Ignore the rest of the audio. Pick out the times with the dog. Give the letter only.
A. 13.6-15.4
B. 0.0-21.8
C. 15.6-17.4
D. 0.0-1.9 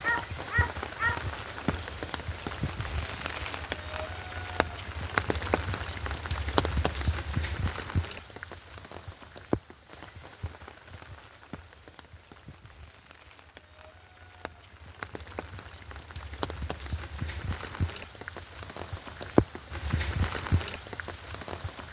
D.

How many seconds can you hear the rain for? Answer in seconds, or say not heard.
22 s.